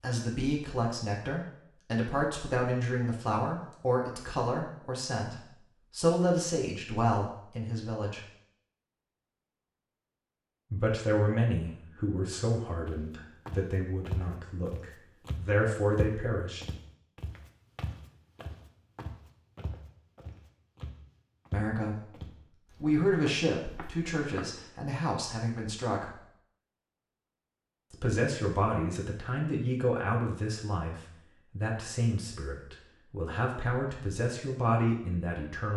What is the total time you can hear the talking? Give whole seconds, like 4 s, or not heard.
26 s.